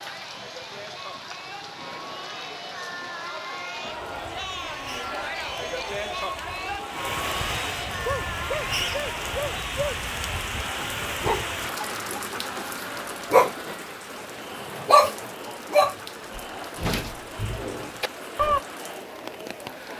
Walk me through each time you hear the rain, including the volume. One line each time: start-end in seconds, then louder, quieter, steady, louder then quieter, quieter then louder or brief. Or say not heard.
0.0-19.9 louder then quieter.